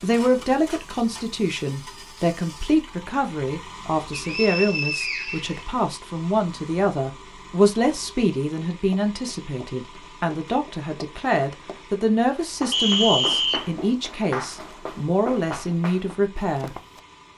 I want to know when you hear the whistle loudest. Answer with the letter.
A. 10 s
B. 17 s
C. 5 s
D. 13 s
D.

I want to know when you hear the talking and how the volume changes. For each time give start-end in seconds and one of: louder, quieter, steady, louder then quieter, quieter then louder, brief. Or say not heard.
0.0-16.7 steady.